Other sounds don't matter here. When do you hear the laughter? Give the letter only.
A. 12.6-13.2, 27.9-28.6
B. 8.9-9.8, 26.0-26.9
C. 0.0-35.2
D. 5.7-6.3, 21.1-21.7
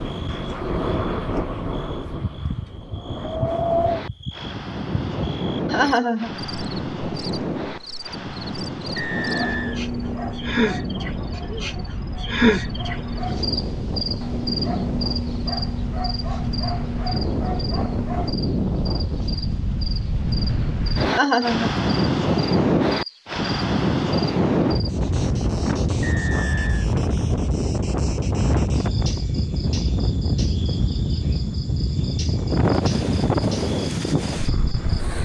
D.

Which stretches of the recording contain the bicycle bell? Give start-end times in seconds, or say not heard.
not heard.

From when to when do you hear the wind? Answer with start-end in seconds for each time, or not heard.
0.0-35.2.